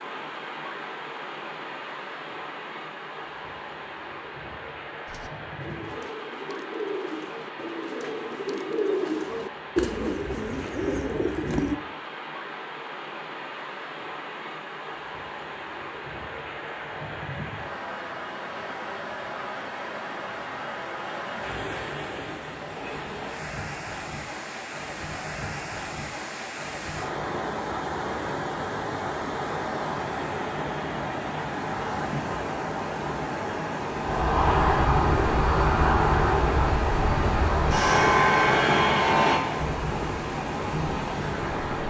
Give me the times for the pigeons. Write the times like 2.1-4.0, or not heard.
5.0-11.8.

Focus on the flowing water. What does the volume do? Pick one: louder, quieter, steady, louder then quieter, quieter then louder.
louder.